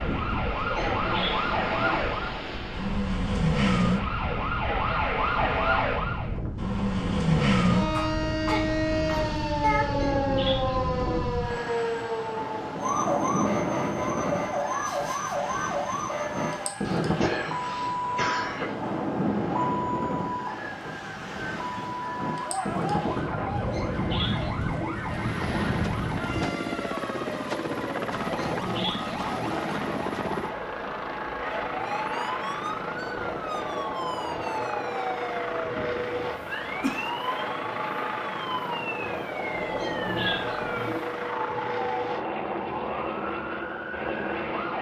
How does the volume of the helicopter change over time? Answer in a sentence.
The loudness of the helicopter stays about the same.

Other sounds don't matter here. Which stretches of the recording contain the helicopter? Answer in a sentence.
The helicopter can be heard from 24.9 to 44.7 s.